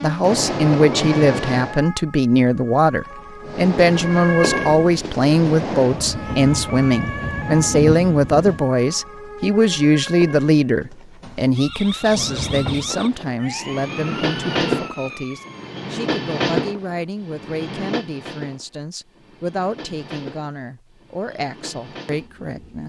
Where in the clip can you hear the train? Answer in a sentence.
You can hear the train from 0.0 to 1.8 s, from 3.4 to 8.7 s and from 12.0 to 22.8 s.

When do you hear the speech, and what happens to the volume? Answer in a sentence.
The speech can be heard from 0.0 to 22.8 s, getting quieter.